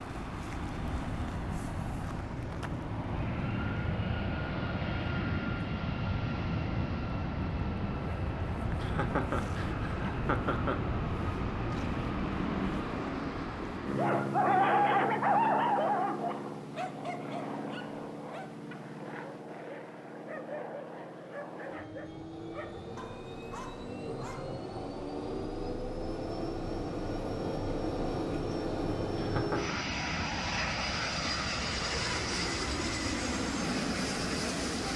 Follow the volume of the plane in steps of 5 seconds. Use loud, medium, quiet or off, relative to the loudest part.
loud, loud, loud, medium, medium, loud, loud.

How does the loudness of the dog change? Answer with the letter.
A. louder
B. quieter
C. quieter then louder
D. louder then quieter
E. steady
B.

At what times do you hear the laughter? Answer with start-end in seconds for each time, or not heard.
8.8-10.8, 29.1-29.8.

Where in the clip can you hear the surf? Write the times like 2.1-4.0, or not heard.
not heard.